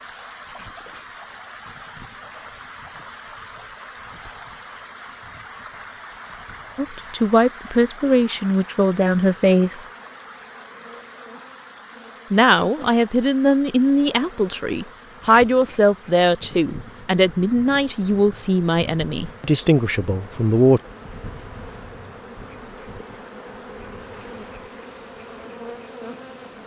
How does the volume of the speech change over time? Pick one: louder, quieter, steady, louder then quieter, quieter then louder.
steady.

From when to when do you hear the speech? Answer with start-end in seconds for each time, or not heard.
6.8-9.8, 12.3-20.8.